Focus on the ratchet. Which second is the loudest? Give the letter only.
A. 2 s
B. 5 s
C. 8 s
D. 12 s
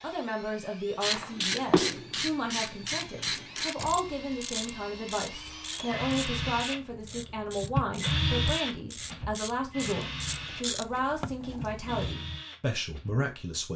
A.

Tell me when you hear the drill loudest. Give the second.
8 s.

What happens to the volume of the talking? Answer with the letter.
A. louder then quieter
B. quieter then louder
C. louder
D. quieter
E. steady
E.